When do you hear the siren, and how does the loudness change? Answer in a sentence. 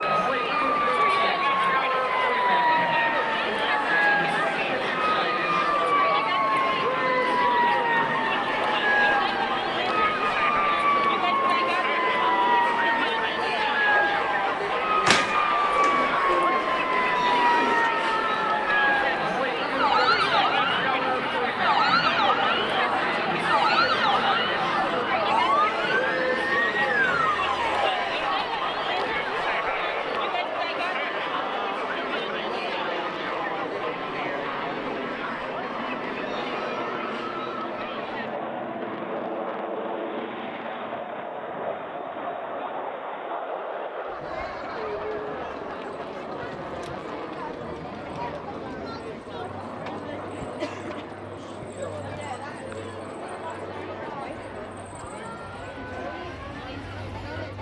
You can hear the siren from 0.0 to 27.9 s, at a steady volume.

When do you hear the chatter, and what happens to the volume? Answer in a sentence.
You can hear the chatter from 0.0 to 57.5 s, getting quieter.